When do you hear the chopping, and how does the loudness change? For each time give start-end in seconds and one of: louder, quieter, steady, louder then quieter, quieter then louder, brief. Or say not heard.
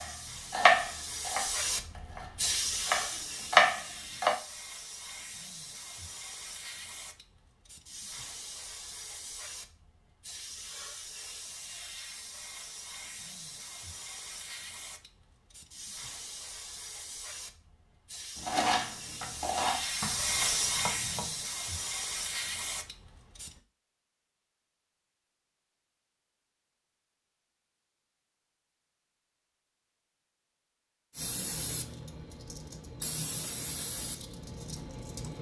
0.0-4.3 quieter then louder
18.4-21.3 brief.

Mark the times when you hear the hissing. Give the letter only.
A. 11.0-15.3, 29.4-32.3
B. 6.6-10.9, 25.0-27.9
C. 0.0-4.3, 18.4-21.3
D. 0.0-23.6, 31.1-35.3
D.